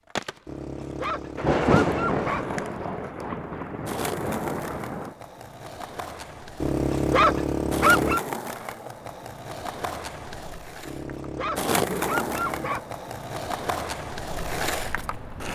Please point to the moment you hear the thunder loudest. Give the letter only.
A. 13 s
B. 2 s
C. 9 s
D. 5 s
B.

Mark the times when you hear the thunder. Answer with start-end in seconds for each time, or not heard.
1.4-5.2.